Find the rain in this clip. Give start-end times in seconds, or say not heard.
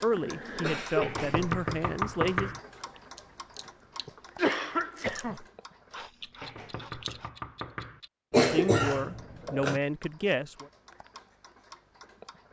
not heard.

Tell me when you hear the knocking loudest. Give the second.
2 s.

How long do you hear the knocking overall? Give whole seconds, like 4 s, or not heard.
3 s.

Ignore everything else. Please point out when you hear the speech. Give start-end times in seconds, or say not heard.
0.0-2.5, 8.4-10.7.